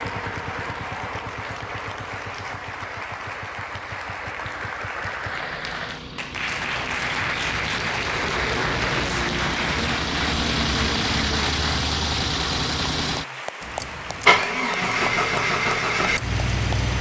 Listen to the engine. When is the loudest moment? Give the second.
15 s.